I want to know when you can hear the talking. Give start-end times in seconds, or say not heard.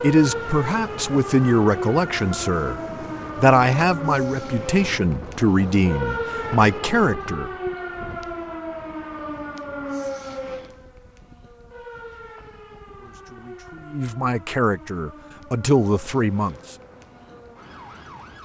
0.0-7.5, 12.9-16.8.